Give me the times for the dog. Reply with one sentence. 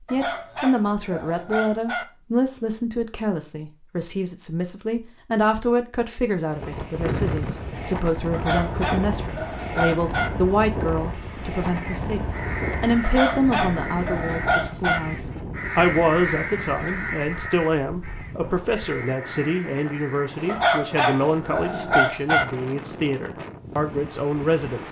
The dog can be heard from 0.1 to 2.0 s, from 8.3 to 10.3 s, from 13.0 to 15.0 s and from 20.4 to 22.4 s.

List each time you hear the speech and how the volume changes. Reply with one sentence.
You can hear the speech from 0.1 to 24.8 s, at a steady volume.